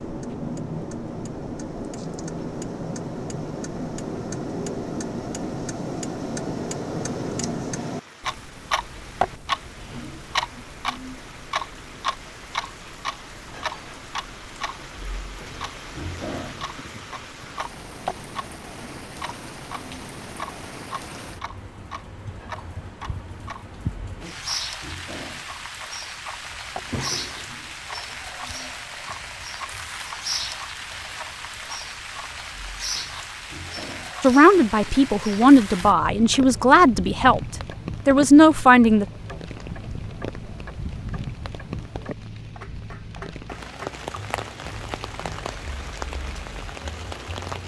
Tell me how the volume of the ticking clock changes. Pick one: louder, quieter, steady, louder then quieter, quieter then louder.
quieter.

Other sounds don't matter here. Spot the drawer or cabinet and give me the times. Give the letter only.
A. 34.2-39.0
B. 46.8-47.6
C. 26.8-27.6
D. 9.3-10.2
C.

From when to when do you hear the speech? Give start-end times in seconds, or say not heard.
34.2-39.0.